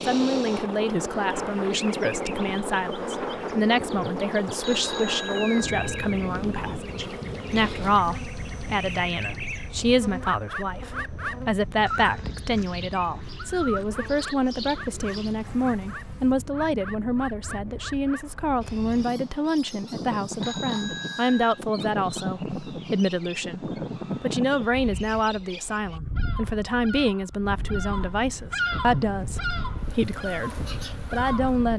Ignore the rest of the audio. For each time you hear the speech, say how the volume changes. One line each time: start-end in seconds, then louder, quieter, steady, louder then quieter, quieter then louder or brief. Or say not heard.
0.0-31.7 steady.